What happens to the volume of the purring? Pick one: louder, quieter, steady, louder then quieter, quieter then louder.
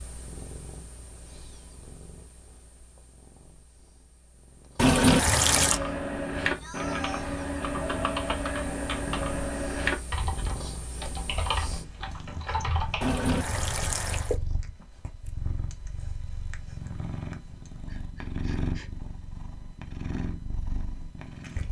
louder.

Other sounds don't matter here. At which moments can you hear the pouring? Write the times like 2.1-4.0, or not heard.
4.8-5.8, 13.0-14.3.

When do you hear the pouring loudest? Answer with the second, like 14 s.
5 s.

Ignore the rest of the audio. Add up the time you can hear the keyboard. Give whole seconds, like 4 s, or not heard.
8 s.